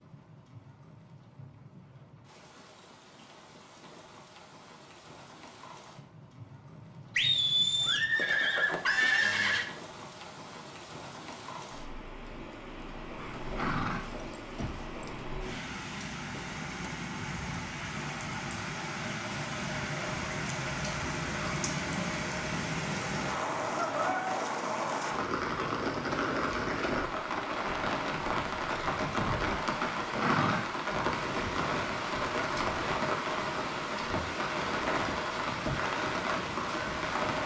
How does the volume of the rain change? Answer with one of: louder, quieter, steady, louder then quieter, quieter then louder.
louder.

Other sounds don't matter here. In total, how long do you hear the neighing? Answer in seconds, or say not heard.
5 s.